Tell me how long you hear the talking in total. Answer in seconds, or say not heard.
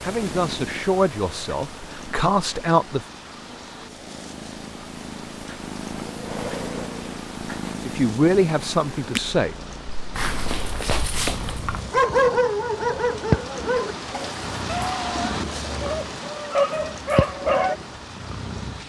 5 s.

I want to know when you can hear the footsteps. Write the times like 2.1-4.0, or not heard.
not heard.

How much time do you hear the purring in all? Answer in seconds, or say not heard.
19 s.